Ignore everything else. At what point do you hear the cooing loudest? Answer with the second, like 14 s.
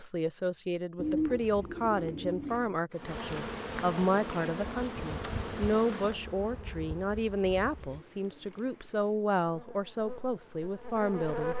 1 s.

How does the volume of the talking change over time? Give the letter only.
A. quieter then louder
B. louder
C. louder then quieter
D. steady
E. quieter
D.